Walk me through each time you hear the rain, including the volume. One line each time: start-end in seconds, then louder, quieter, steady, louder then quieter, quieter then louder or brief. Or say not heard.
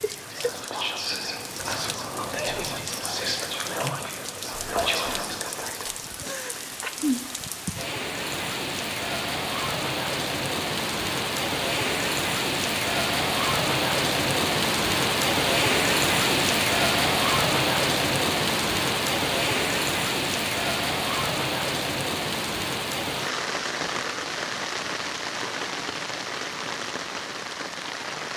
0.0-28.3 louder then quieter.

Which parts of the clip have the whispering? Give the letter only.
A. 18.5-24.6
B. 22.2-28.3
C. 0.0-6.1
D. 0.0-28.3
C.